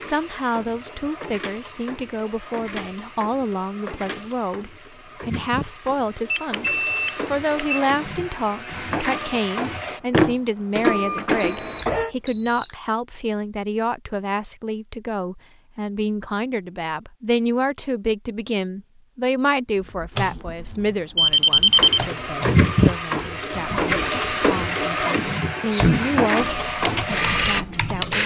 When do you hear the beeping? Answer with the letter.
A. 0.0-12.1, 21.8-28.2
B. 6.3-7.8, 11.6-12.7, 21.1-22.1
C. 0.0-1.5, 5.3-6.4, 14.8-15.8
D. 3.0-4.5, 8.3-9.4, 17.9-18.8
B.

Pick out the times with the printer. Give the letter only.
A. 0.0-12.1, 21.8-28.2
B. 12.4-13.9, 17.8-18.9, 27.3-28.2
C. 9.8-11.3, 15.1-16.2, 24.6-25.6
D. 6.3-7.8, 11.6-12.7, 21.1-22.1
A.